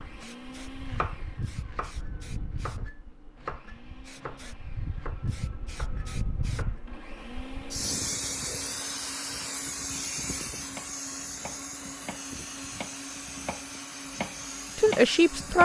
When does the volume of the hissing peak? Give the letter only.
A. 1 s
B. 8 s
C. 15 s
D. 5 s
B.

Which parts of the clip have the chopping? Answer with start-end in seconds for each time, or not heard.
0.0-6.8, 10.6-15.6.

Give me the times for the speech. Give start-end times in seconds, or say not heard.
14.8-15.6.